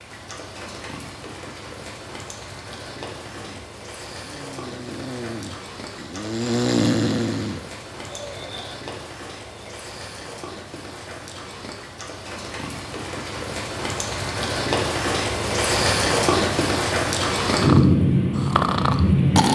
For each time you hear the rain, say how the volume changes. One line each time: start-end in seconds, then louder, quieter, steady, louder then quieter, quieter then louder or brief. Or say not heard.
0.0-19.5 louder.